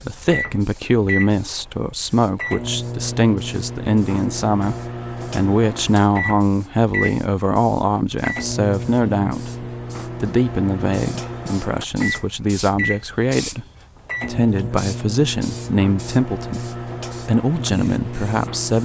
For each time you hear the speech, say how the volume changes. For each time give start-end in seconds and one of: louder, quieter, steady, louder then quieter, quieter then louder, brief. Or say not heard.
0.1-9.5 steady
10.2-18.8 steady.